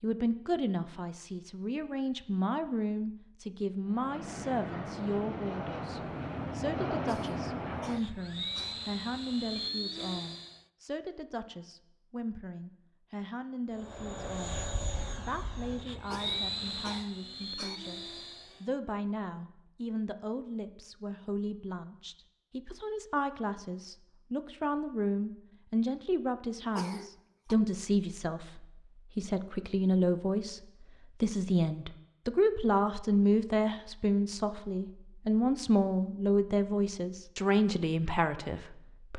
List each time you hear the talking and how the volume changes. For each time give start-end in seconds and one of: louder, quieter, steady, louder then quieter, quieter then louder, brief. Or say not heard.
0.0-30.6 quieter then louder
31.2-39.1 steady.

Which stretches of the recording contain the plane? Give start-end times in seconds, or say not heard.
3.9-10.7, 13.7-18.7.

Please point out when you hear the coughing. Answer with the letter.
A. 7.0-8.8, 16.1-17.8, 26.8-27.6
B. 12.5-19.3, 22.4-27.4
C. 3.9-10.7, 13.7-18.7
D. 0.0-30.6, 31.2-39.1
A.